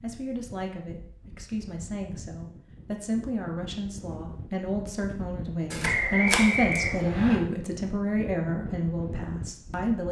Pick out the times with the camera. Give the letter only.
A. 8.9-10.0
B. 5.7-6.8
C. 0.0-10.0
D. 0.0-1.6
B.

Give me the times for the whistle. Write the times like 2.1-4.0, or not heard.
5.8-7.4.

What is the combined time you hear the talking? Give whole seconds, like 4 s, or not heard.
10 s.